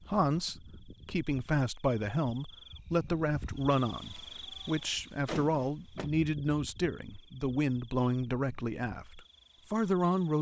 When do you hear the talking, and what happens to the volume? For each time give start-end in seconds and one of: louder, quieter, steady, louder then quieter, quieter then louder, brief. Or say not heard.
0.1-10.3 steady.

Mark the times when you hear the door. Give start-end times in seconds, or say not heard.
5.2-6.1.